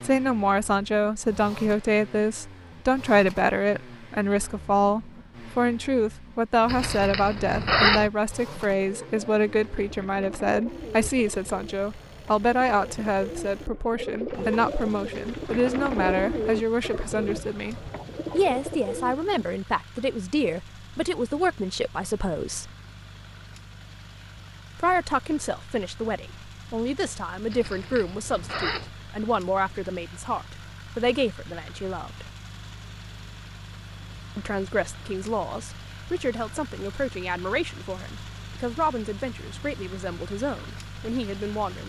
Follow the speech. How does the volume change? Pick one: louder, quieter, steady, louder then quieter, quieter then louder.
quieter.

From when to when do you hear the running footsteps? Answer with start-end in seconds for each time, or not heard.
not heard.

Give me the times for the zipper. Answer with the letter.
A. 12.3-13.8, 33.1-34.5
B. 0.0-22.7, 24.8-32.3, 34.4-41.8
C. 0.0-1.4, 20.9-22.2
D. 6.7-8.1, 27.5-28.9
D.